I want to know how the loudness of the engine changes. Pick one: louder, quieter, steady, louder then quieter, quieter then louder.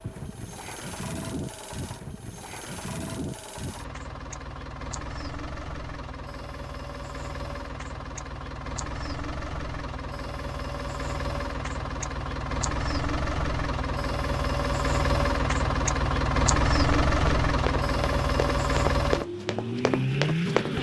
louder.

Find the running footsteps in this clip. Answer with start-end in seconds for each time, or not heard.
16.9-20.7.